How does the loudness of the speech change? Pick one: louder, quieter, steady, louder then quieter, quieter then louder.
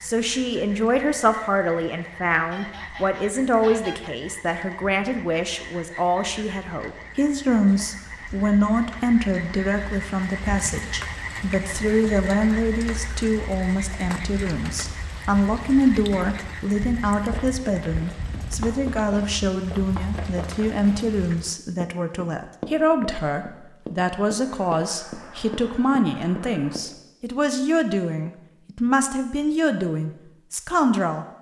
steady.